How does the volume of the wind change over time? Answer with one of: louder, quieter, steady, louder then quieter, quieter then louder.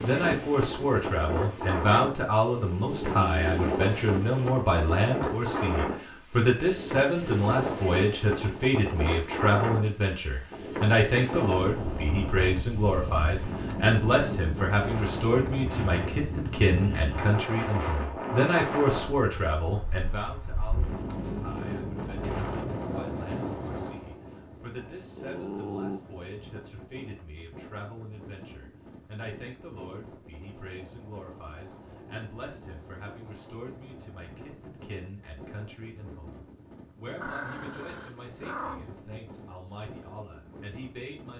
quieter.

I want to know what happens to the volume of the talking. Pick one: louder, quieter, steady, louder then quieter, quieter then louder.
quieter.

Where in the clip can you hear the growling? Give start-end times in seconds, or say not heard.
2.5-3.6, 25.1-26.0, 37.2-38.9.